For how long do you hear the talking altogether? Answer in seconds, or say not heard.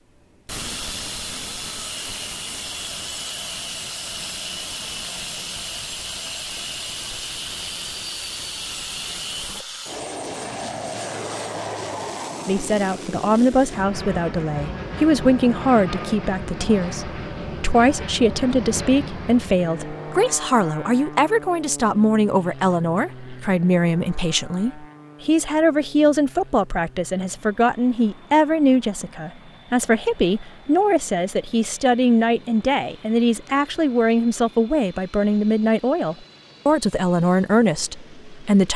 26 s.